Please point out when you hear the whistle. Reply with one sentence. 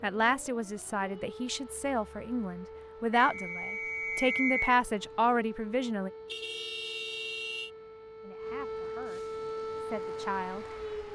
The whistle can be heard from 3.1 to 4.8 s.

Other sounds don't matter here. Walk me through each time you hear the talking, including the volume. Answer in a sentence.
You can hear the talking from 0.0 to 6.1 s, getting louder; and briefly from 8.2 to 10.7 s.